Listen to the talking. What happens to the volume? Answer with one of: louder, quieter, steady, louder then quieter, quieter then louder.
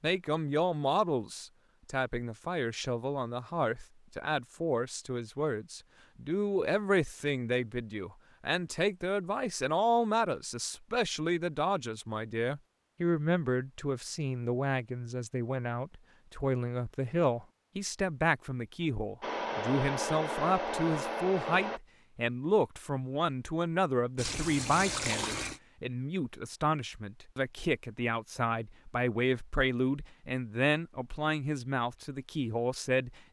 steady.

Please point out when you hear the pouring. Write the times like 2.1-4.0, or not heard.
24.1-25.6.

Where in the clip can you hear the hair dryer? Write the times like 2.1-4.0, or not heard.
19.2-21.8.